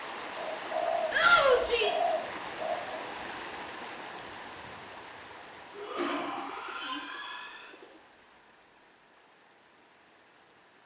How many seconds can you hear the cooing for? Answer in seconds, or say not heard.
5 s.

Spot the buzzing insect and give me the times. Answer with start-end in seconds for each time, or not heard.
not heard.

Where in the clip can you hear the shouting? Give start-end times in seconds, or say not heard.
1.1-2.0, 5.8-7.7.